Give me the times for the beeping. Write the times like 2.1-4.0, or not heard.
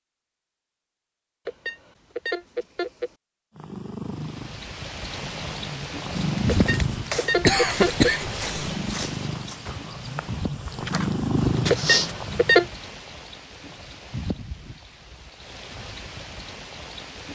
1.4-3.1, 6.5-8.1, 11.7-12.7.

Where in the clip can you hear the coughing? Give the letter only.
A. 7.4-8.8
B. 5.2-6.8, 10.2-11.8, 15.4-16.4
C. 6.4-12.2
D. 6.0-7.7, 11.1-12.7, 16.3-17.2
A.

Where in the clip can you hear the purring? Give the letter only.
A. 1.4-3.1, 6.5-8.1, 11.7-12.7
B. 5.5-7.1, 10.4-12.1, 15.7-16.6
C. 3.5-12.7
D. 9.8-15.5
C.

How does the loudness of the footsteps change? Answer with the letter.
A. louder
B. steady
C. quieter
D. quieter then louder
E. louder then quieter
D.